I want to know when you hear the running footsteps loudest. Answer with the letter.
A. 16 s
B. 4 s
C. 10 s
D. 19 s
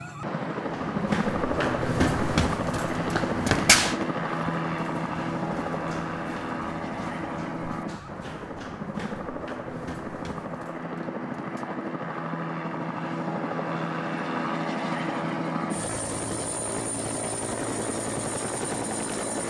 B.